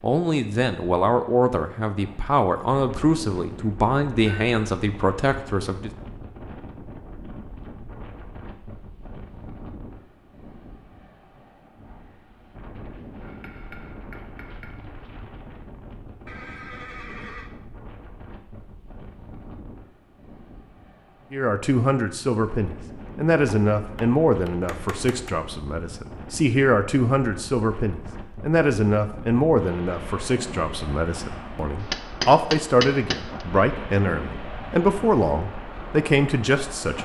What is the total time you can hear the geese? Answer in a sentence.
The geese can't be heard in this clip.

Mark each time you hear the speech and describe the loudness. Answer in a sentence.
The speech can be heard from 0.0 to 5.9 s, at a steady volume; and from 21.3 to 37.0 s, at a steady volume.